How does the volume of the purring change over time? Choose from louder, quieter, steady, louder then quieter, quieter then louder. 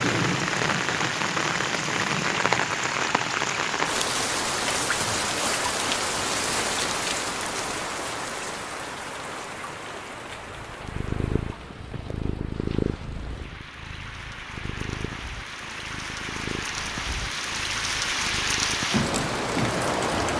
quieter.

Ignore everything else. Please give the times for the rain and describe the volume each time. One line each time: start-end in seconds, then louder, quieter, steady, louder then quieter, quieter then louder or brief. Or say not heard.
0.0-20.3 quieter then louder.